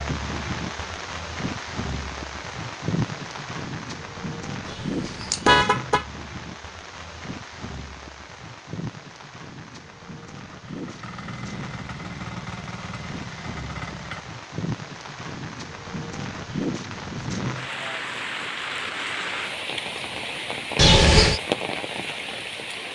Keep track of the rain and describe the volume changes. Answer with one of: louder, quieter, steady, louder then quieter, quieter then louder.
quieter then louder.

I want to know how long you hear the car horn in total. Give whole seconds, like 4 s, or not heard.
2 s.